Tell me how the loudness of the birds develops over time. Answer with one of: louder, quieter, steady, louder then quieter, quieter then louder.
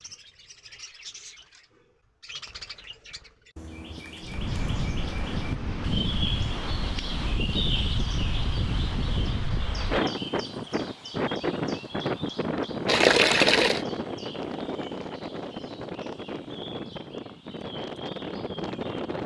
louder then quieter.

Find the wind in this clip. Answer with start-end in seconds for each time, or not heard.
4.2-19.2.